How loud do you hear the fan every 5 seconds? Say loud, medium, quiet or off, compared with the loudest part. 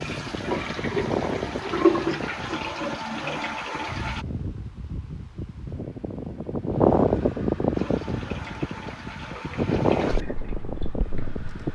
medium, loud, medium.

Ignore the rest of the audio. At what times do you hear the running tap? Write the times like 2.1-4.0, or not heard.
0.0-4.2, 7.7-11.4.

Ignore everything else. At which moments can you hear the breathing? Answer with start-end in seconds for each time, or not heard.
not heard.